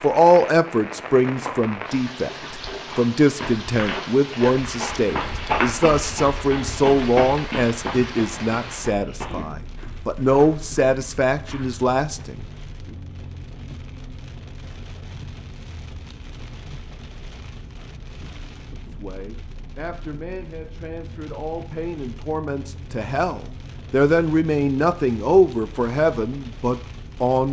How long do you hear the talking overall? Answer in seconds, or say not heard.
20 s.